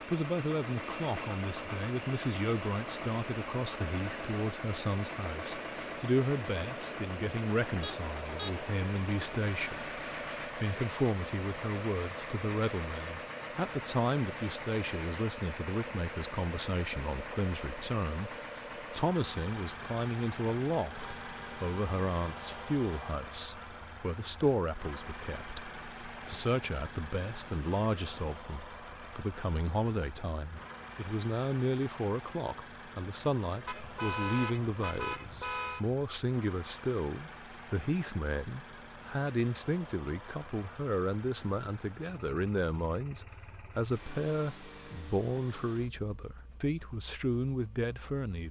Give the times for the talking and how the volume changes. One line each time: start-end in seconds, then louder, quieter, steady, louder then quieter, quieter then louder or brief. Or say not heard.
0.1-48.4 steady.